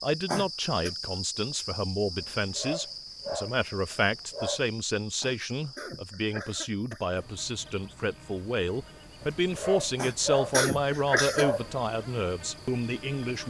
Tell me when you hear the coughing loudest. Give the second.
11 s.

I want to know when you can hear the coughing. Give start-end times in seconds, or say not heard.
0.2-0.9, 5.2-7.2, 9.9-11.5.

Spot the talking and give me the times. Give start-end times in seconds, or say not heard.
0.0-13.4.